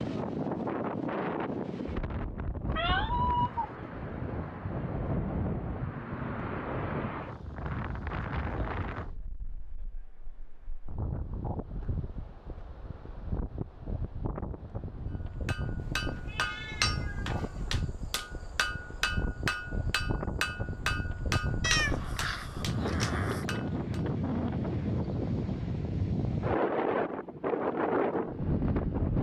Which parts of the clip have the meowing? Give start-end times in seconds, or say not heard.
2.6-3.7, 15.8-17.8, 21.6-23.4.